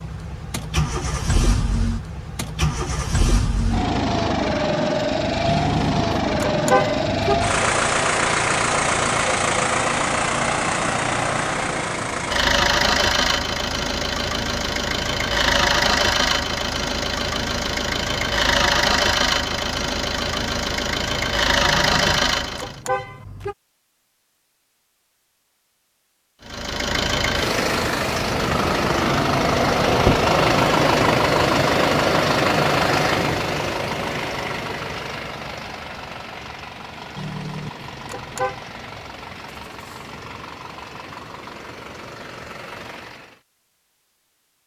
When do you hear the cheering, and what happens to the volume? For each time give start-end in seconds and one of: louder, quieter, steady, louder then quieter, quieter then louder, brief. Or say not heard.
not heard.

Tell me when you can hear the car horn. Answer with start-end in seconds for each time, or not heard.
5.5-7.6, 21.6-23.6, 37.1-38.6.